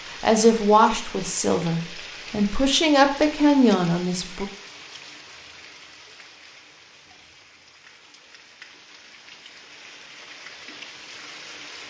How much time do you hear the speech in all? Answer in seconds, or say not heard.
4 s.